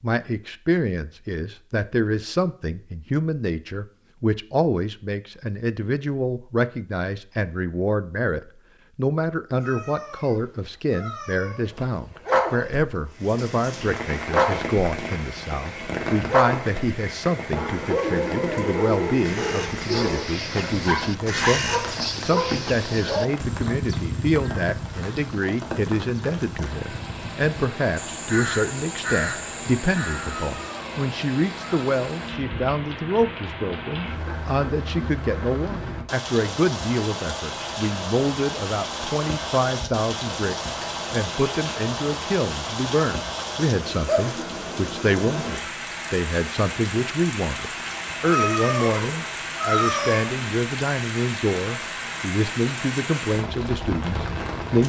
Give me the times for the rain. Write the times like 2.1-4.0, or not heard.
13.1-54.8.